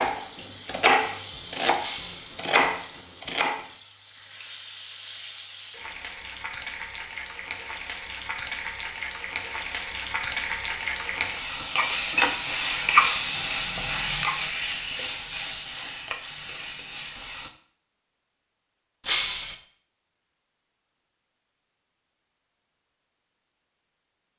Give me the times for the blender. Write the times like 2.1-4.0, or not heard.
not heard.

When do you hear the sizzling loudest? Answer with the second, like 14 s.
13 s.